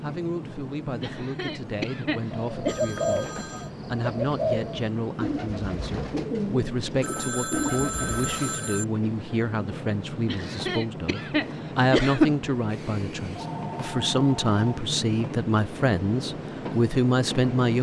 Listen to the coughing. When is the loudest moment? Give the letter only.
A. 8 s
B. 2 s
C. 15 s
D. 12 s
D.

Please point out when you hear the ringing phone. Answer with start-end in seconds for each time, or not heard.
2.6-3.7, 7.0-8.8, 13.3-14.8.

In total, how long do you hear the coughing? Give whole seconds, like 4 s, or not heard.
4 s.